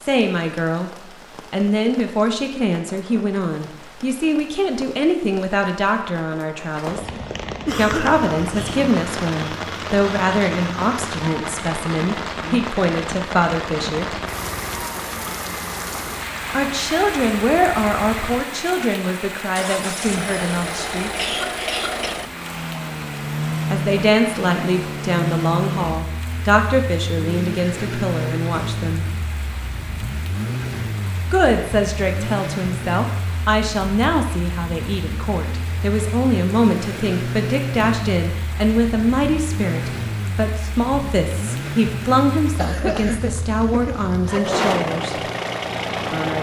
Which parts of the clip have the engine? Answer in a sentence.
You can hear the engine from 8.0 to 46.3 s.